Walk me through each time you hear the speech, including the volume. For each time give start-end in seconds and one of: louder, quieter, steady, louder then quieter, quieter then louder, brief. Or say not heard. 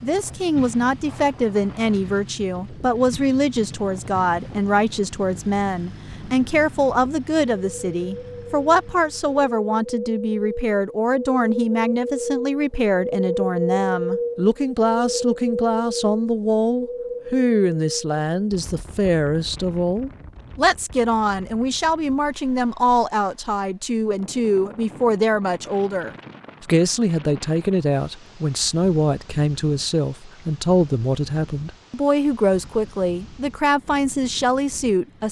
0.0-35.2 steady.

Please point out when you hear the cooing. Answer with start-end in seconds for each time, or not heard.
not heard.